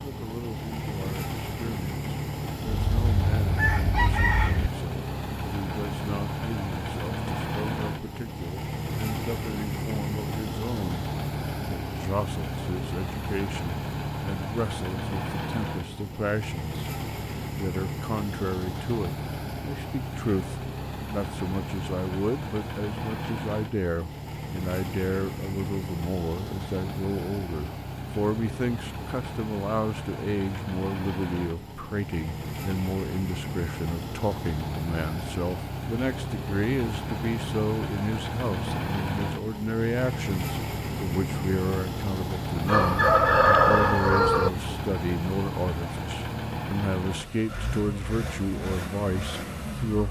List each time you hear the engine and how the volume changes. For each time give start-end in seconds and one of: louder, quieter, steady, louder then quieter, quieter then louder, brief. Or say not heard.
0.0-50.0 steady.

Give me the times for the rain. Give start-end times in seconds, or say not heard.
not heard.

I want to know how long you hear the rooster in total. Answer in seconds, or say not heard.
4 s.